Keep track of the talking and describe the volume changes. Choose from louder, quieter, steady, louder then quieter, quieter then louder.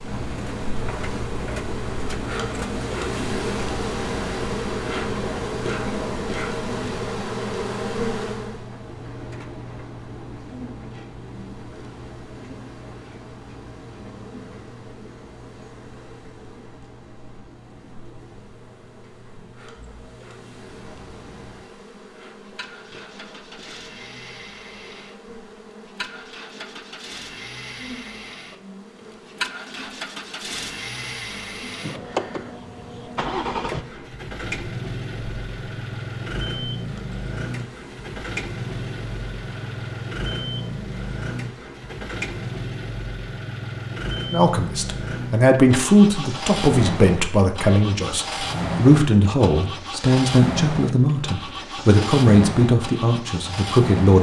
steady.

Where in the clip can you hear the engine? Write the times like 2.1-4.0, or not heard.
0.0-54.1.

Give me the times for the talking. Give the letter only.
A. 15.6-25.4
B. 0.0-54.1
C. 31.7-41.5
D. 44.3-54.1
D.